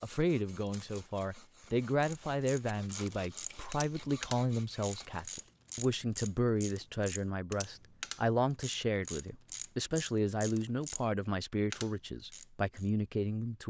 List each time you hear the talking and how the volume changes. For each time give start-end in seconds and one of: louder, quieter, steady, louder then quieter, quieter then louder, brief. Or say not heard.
0.0-13.6 steady.